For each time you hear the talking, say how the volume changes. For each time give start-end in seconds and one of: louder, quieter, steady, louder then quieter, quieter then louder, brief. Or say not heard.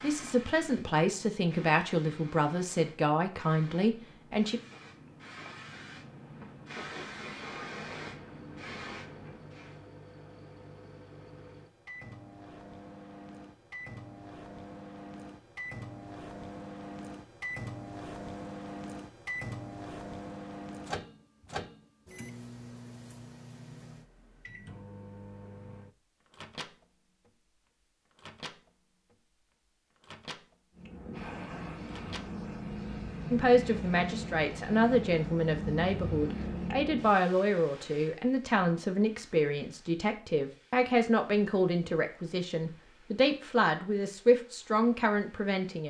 0.0-4.6 steady
33.3-45.8 steady.